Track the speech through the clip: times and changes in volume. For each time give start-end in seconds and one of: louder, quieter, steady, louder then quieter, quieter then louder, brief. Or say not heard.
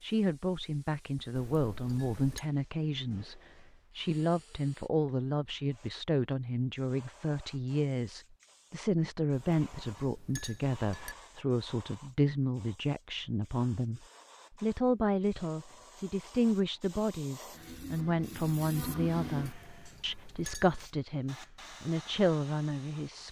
0.0-23.2 steady.